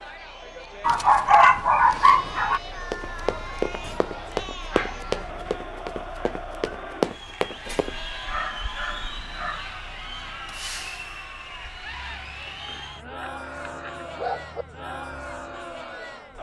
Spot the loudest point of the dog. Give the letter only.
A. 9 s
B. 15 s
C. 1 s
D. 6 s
C.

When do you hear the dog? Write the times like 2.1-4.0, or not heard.
0.8-2.6, 4.7-5.5, 8.2-9.7, 12.7-14.7.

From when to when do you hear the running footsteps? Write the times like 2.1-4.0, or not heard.
2.9-8.0.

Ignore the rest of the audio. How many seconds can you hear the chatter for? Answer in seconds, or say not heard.
16 s.